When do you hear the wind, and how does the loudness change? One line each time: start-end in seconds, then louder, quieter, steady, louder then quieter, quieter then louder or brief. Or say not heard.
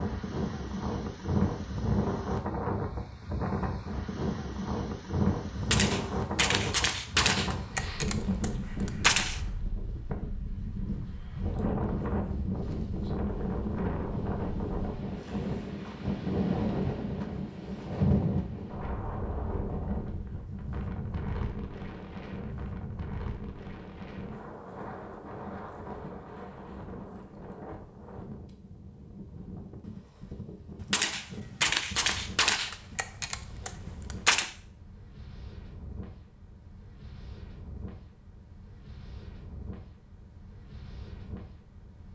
0.0-42.1 quieter.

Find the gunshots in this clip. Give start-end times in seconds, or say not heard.
5.5-9.4, 30.8-34.5.